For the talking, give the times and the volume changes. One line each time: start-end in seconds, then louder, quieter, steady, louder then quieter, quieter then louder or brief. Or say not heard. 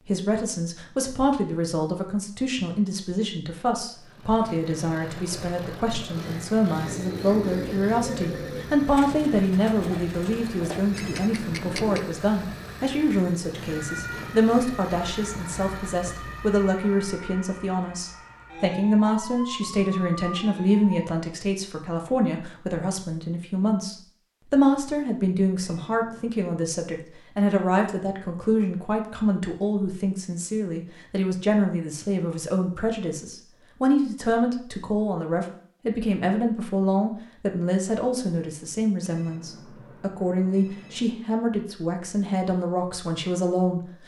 0.0-43.8 steady.